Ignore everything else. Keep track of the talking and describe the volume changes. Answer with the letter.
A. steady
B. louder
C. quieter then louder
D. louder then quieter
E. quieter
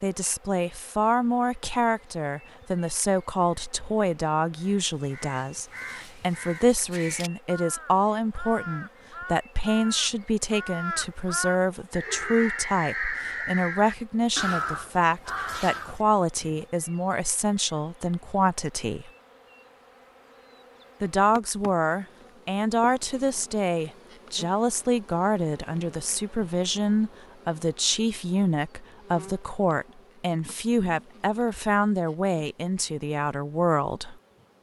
A.